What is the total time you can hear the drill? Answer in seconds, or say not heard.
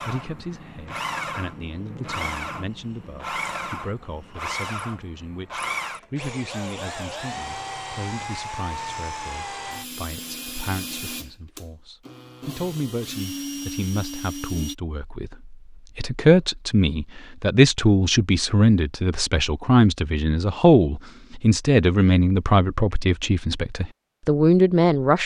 15 s.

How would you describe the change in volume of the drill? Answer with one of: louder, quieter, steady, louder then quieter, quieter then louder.
steady.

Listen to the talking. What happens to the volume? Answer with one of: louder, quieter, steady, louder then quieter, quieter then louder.
louder.